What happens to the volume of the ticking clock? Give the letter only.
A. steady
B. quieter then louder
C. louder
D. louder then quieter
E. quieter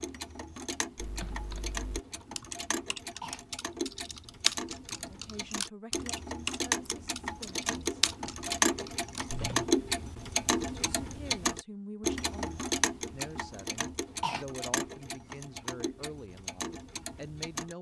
D.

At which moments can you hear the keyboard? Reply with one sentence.
The keyboard can be heard from 0.9 to 9.7 s.